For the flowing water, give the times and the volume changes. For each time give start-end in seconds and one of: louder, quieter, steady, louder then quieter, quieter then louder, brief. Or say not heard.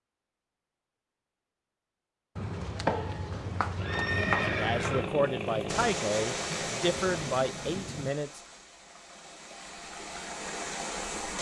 5.7-11.3 quieter then louder.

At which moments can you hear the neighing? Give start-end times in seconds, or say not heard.
2.4-5.1.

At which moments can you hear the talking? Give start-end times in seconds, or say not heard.
4.5-8.4.